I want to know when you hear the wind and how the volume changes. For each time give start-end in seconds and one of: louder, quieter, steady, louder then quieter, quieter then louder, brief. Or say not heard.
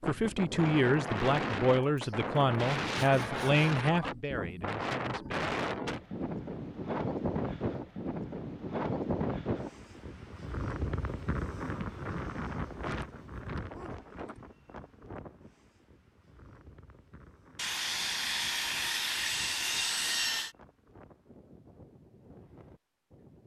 0.0-23.4 quieter.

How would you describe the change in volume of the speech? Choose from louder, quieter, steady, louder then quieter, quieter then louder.
quieter.